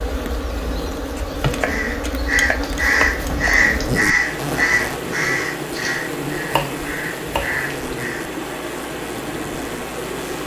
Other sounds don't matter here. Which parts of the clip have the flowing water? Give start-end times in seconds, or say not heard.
4.0-10.4.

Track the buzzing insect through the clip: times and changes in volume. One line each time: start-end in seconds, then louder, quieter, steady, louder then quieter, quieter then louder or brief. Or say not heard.
0.0-10.4 quieter.